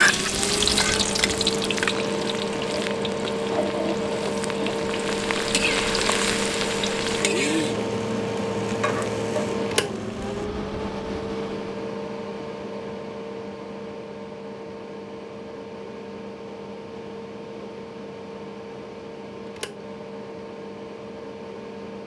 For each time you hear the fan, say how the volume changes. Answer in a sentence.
The fan can be heard from 0.0 to 22.0 s, getting quieter.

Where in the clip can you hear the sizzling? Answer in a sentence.
The sizzling can be heard from 0.0 to 10.5 s.